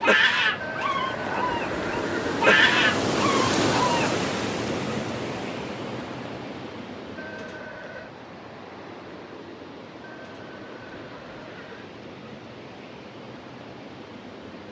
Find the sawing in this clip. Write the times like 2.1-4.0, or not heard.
not heard.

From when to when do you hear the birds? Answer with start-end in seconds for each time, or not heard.
not heard.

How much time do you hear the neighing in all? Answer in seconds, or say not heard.
5 s.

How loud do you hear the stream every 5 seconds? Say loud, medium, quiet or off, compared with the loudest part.
loud, medium, quiet.